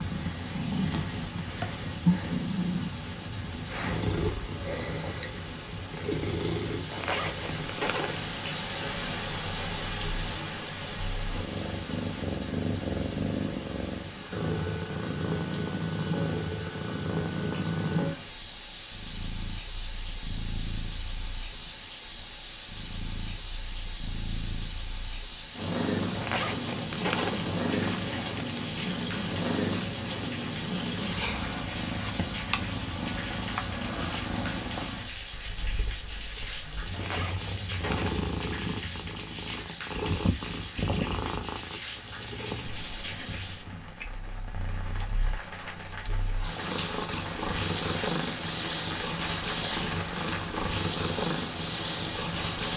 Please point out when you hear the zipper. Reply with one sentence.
The zipper can be heard from 6.9 to 8.3 s, from 26.1 to 28.4 s and from 36.9 to 38.3 s.